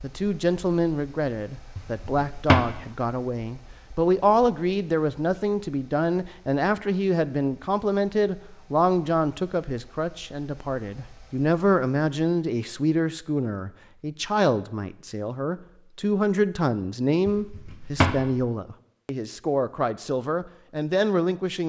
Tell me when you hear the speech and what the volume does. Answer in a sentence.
The speech can be heard from 0.0 to 21.6 s, at a steady volume.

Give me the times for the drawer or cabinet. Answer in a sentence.
You can hear the drawer or cabinet from 1.8 to 2.8 s and from 17.2 to 18.2 s.